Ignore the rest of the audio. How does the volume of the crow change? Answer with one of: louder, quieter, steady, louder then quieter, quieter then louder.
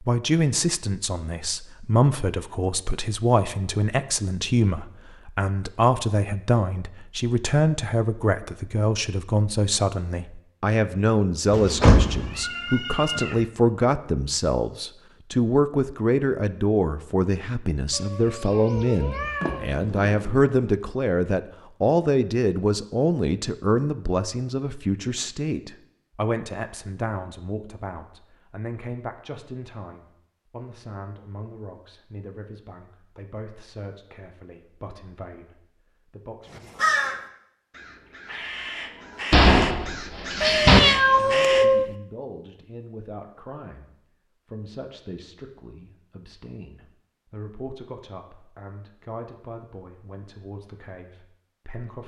quieter then louder.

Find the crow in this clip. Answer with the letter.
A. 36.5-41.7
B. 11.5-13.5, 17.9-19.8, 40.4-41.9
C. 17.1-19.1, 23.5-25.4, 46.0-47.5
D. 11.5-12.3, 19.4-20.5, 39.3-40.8
A.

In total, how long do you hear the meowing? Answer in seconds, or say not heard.
5 s.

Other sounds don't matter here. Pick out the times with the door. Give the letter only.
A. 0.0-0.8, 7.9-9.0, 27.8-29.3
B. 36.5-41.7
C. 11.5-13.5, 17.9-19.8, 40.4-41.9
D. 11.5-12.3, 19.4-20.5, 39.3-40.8
D.